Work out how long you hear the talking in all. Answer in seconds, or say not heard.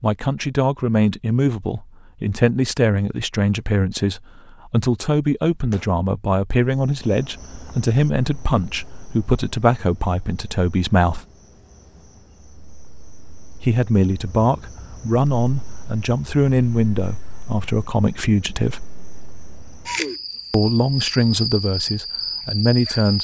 19 s.